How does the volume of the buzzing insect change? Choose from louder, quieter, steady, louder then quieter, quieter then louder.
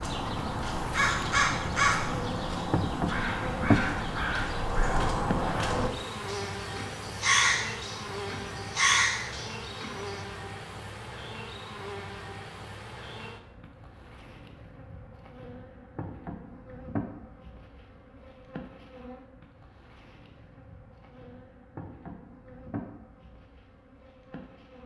quieter.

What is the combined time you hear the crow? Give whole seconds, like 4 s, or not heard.
10 s.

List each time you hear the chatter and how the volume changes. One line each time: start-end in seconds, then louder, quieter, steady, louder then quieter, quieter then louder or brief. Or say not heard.
not heard.